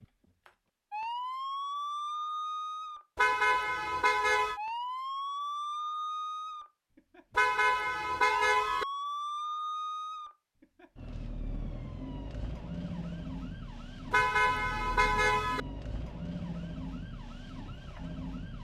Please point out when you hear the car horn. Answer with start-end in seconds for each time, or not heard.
3.1-4.6, 7.3-8.8, 14.1-15.6.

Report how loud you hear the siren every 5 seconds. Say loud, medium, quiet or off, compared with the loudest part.
loud, loud, medium, medium.